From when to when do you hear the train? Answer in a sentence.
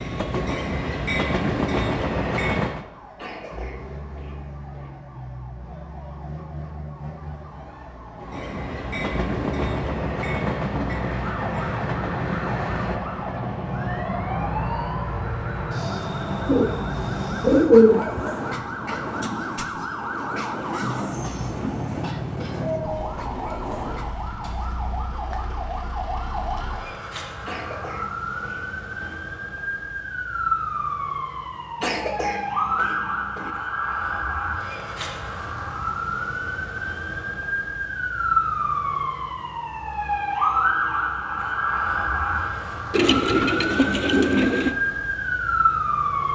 You can hear the train from 0.0 to 2.9 s and from 8.2 to 24.1 s.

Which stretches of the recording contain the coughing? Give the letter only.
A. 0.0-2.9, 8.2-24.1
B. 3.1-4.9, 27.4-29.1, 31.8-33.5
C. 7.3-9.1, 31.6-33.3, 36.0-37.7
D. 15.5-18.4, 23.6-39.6
B.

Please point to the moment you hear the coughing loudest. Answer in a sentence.
The volume of the coughing peaks at 32 seconds.